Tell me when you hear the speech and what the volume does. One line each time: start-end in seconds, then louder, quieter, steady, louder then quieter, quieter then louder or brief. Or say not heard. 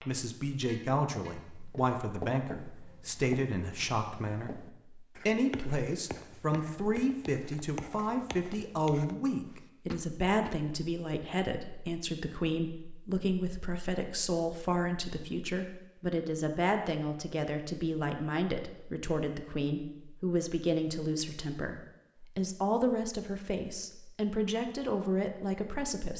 0.0-26.1 steady.